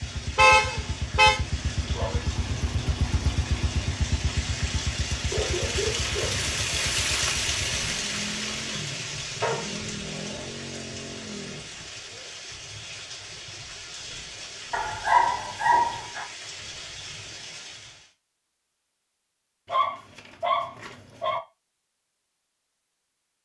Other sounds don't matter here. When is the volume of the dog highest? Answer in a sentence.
The loudest moment of the dog is at 15 seconds.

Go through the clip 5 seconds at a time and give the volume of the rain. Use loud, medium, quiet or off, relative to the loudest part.
medium, loud, medium, medium, off.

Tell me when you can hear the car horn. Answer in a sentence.
You can hear the car horn from 0.3 to 1.4 s.